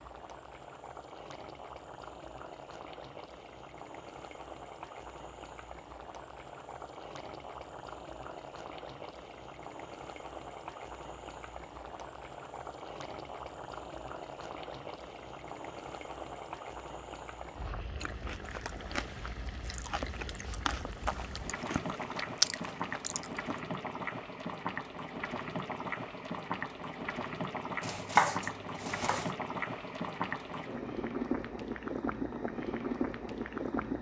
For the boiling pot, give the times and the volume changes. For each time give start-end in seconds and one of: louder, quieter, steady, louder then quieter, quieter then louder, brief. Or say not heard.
0.0-33.9 louder.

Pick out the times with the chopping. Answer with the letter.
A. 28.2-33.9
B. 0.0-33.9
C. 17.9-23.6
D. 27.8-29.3
D.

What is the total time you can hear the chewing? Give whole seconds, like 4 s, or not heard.
6 s.